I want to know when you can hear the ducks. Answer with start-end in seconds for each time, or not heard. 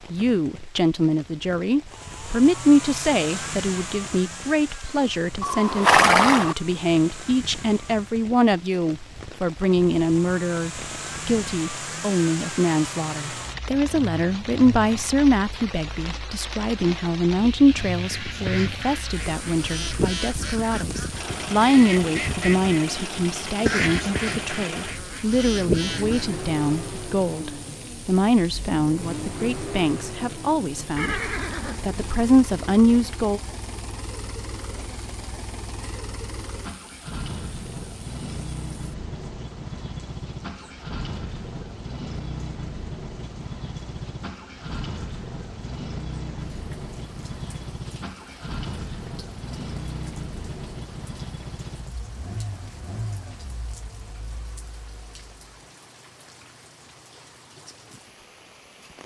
18.1-26.4.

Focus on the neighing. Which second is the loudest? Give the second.
6 s.